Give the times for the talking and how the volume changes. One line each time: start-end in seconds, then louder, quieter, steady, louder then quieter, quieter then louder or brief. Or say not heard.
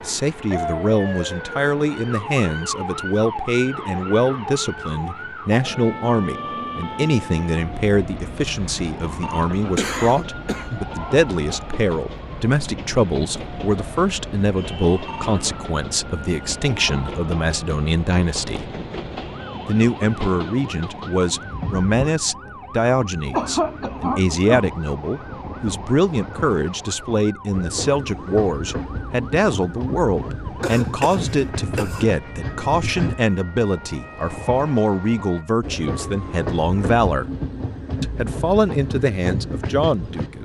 0.0-18.7 steady
19.6-37.2 steady
38.0-40.3 brief.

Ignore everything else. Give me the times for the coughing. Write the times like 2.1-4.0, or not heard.
9.8-10.8, 23.3-24.6, 30.6-32.0.